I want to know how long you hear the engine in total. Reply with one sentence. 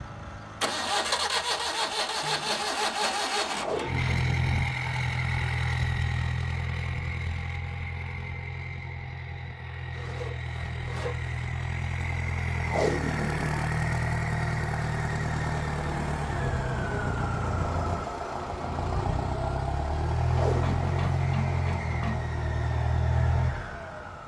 You can hear the engine for 24 seconds altogether.